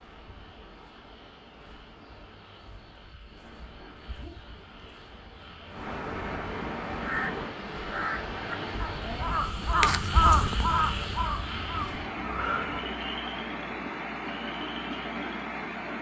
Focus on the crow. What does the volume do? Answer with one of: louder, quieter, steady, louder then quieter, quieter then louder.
louder then quieter.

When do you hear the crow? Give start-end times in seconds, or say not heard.
7.0-12.8.